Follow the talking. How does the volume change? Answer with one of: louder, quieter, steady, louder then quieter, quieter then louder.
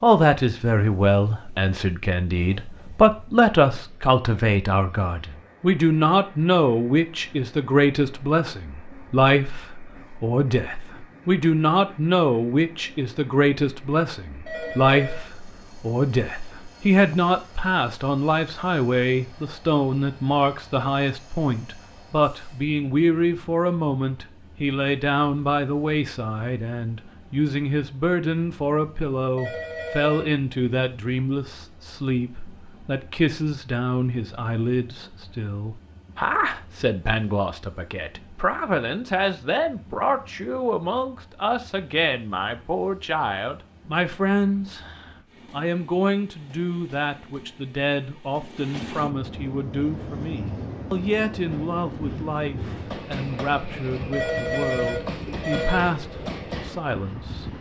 quieter.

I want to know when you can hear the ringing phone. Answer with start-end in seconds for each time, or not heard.
14.4-15.2, 29.4-30.3, 54.1-55.9.